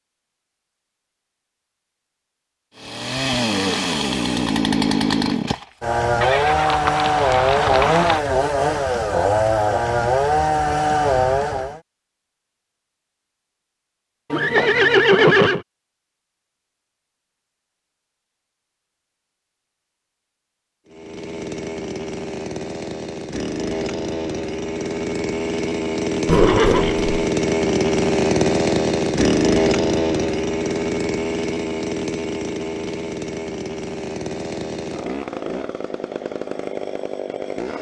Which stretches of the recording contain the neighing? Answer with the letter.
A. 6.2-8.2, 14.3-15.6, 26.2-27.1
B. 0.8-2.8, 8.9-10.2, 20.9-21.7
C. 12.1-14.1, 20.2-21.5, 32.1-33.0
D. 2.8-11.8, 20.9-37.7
A.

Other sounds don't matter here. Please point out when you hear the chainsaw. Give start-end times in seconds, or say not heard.
2.8-11.8, 20.9-37.7.